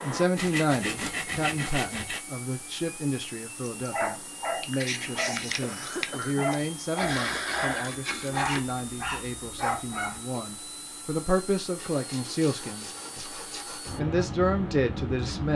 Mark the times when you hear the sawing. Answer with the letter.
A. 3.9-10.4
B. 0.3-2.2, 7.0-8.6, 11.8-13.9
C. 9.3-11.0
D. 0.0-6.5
B.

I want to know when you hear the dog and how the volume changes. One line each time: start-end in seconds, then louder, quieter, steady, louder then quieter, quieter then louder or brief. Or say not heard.
3.9-10.4 steady.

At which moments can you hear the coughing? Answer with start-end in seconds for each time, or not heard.
4.9-6.5.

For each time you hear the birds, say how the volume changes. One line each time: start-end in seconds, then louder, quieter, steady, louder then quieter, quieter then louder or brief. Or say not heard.
not heard.